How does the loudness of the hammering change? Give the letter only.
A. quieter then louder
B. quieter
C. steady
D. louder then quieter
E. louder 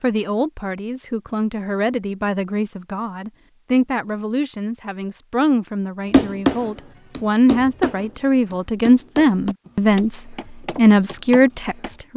D.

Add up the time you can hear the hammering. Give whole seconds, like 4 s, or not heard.
6 s.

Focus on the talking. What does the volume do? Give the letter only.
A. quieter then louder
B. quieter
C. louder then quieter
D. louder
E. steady
D.